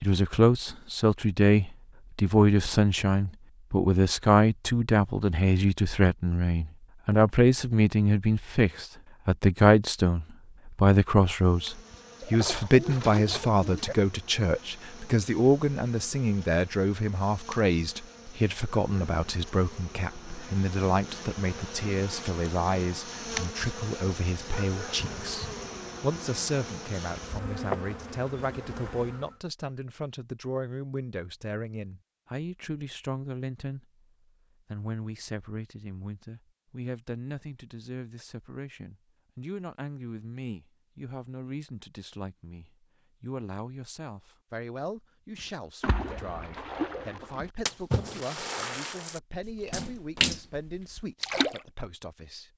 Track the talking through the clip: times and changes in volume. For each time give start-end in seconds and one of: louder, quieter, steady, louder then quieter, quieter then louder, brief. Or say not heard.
0.0-33.9 quieter
34.7-52.5 steady.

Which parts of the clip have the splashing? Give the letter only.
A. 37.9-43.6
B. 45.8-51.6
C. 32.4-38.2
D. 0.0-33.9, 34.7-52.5
B.